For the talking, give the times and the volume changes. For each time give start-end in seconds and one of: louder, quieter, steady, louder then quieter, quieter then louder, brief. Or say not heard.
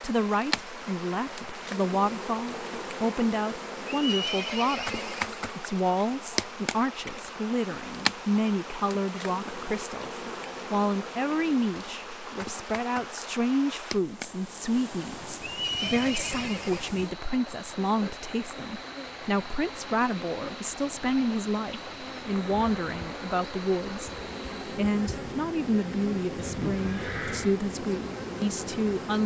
0.0-29.2 steady.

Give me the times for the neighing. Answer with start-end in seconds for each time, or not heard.
3.9-5.3, 15.4-17.0, 26.4-27.6.